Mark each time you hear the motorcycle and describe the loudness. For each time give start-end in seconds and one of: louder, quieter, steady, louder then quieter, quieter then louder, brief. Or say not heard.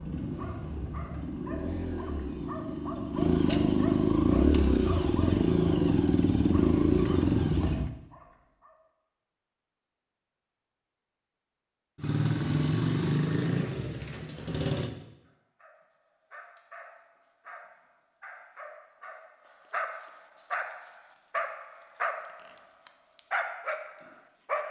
0.0-7.9 louder
11.9-14.9 brief.